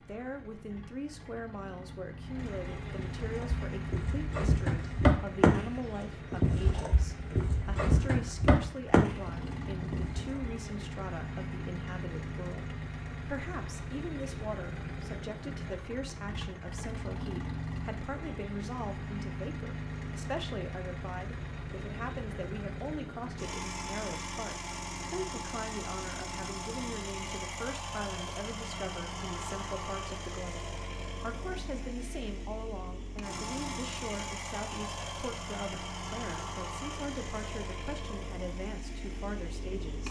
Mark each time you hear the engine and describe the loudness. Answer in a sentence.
The engine can be heard from 0.0 to 40.0 s, at a steady volume.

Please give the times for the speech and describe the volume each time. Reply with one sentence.
The speech can be heard from 0.0 to 40.0 s, at a steady volume.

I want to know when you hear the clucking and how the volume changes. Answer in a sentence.
The clucking can't be heard in this clip.